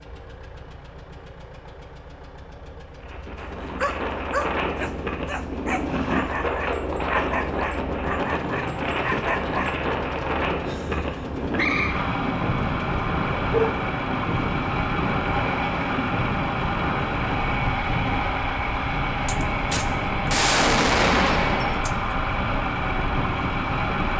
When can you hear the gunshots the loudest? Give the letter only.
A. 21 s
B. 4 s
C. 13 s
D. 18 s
A.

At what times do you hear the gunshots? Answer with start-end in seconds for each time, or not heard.
19.2-22.1.